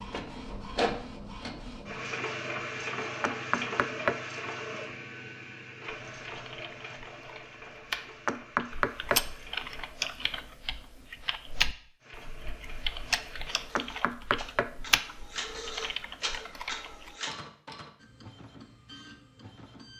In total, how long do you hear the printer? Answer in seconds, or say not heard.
18 s.